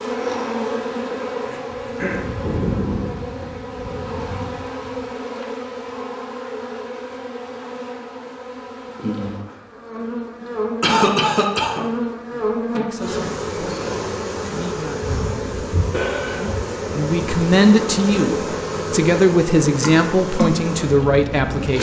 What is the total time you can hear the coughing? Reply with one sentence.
You can hear the coughing for 3 seconds altogether.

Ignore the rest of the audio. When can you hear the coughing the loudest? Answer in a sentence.
The loudest moment of the coughing is at 11 seconds.